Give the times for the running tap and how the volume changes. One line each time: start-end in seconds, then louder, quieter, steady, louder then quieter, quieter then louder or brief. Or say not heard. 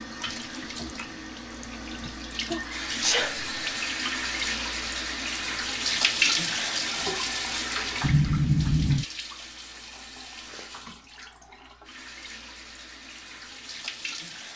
0.0-14.5 louder then quieter.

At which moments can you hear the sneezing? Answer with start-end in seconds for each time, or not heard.
2.0-3.5, 8.0-9.1.